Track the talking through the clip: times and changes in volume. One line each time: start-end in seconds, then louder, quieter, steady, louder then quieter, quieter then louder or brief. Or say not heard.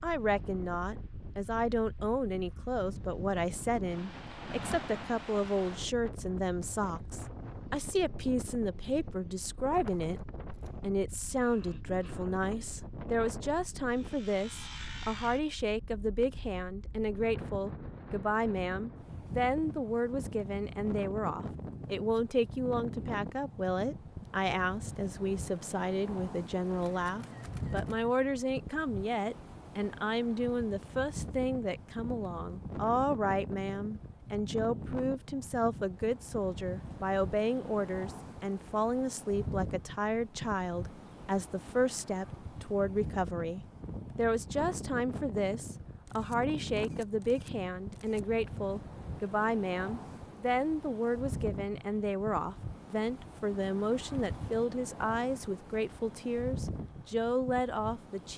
0.0-58.3 steady.